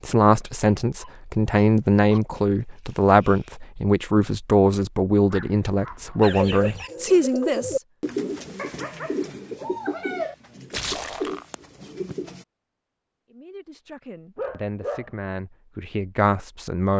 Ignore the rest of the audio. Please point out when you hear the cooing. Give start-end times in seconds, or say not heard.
6.2-12.4.